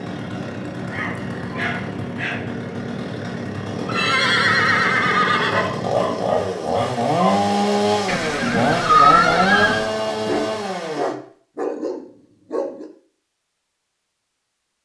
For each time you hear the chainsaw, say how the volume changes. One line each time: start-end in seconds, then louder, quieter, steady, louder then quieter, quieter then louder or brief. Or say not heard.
0.0-11.2 louder.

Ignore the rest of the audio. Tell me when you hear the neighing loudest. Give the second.
9 s.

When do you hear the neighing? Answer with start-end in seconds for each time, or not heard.
3.9-5.7, 8.1-9.8.